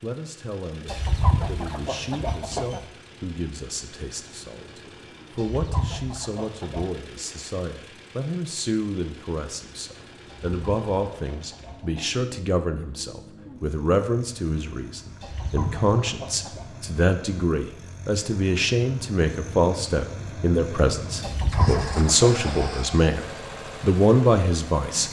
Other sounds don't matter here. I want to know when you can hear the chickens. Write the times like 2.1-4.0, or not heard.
0.8-2.9, 5.3-6.8, 10.2-12.2, 15.2-16.6, 21.2-22.7.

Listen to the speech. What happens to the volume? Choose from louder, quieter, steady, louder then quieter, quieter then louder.
louder.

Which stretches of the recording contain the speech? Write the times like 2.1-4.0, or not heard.
0.0-25.0.